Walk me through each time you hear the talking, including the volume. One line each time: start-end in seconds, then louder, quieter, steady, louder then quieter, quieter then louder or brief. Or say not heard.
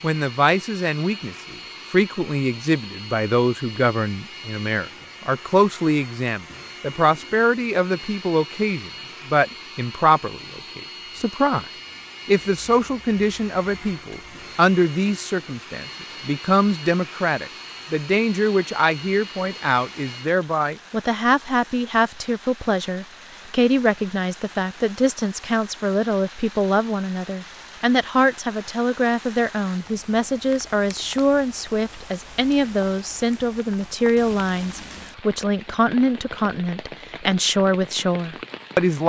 0.0-11.7 steady
12.2-39.0 steady.